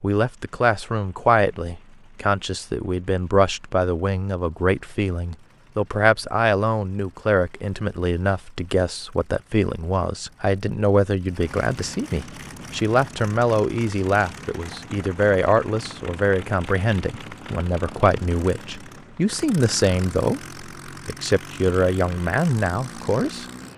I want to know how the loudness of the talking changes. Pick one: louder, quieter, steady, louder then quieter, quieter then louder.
steady.